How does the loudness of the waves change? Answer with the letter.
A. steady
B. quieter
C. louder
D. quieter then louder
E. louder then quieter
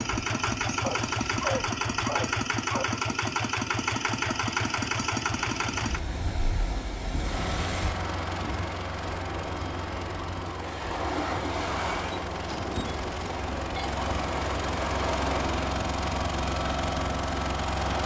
C.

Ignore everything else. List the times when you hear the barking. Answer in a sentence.
You can hear the barking from 0.8 to 2.9 s.